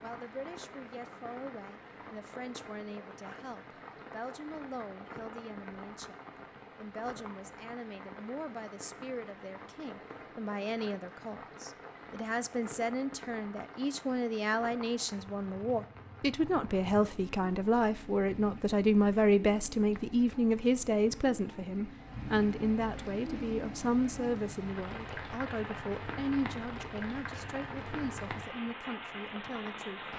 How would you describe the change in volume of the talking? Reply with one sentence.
The volume of the talking goes up, then down.